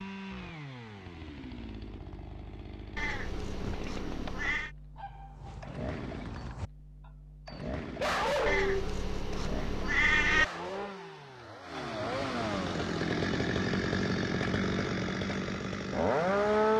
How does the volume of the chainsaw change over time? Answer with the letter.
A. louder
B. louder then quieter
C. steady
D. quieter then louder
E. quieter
A.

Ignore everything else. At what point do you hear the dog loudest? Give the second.
8 s.